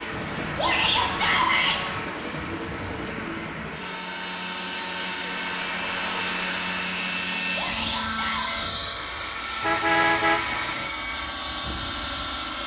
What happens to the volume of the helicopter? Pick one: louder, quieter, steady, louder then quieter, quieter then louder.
louder.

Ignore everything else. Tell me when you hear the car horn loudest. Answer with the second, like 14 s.
10 s.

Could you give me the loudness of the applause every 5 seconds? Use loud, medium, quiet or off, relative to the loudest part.
loud, loud, off.